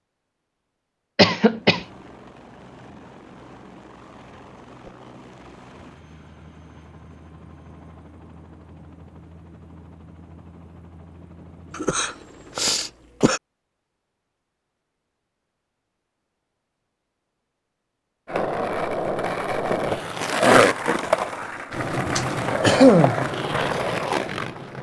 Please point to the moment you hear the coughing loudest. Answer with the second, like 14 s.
23 s.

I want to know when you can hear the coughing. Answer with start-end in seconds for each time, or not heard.
1.1-1.9, 11.8-13.4, 22.1-23.2.